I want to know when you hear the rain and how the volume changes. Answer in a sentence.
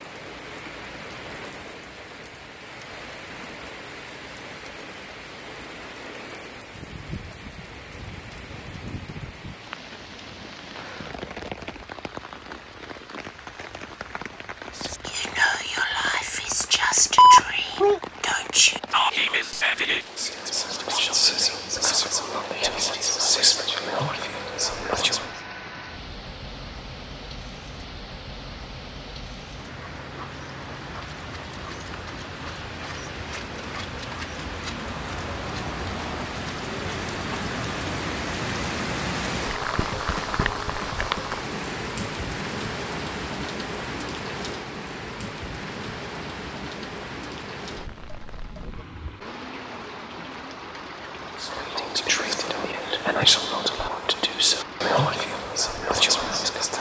The rain can be heard from 0.0 to 56.7 s, getting louder then quieter.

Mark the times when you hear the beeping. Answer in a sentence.
You can hear the beeping from 17.1 to 18.0 s.